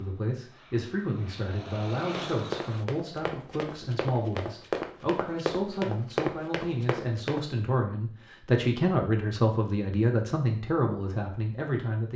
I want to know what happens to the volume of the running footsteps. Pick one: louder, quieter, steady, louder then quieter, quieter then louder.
louder.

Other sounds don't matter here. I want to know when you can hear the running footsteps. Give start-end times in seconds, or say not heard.
2.3-7.4.